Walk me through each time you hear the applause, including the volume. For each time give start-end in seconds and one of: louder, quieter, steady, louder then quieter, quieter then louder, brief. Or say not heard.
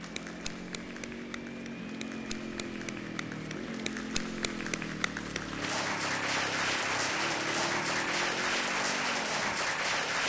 0.0-10.2 louder.